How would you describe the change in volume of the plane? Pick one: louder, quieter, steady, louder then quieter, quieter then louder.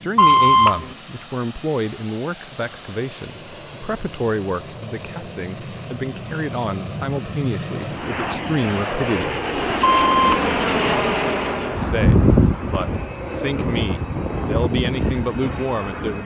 louder then quieter.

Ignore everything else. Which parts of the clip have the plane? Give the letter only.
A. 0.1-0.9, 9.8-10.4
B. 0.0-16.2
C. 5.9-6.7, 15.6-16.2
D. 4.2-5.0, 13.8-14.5
B.